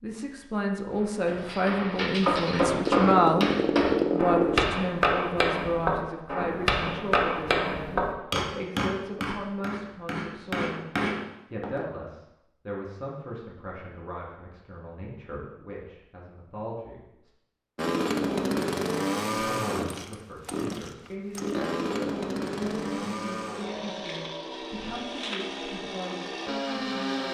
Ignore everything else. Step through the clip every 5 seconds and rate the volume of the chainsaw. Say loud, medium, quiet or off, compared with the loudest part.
loud, off, off, loud, medium, medium.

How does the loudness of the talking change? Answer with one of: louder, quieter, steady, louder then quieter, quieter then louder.
quieter.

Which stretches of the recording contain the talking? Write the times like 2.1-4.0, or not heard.
0.0-3.5, 4.1-17.3, 19.3-27.3.